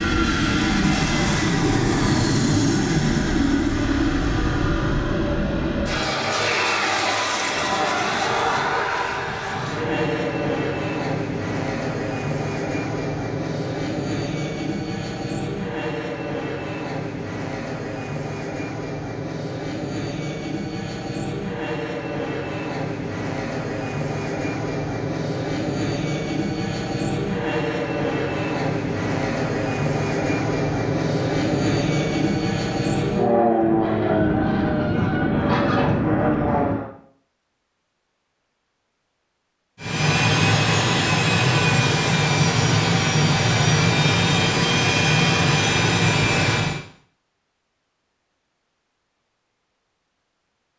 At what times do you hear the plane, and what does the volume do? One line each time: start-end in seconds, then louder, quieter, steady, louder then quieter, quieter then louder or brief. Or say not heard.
0.0-36.9 quieter then louder
39.8-46.8 steady.